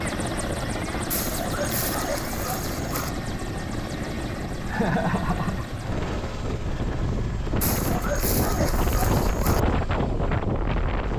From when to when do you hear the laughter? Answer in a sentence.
The laughter can be heard from 4.7 to 5.9 s.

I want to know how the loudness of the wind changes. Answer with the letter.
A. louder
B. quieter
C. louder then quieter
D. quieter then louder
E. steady
A.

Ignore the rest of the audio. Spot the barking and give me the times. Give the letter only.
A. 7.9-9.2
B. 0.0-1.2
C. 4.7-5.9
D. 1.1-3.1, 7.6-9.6
D.